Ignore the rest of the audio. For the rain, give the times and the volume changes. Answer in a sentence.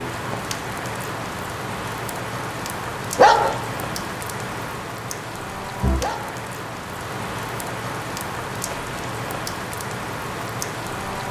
You can hear the rain from 0.0 to 11.2 s, at a steady volume.